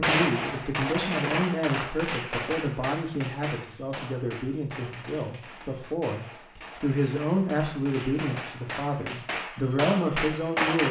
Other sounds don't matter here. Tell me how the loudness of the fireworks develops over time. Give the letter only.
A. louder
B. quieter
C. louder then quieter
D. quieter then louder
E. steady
D.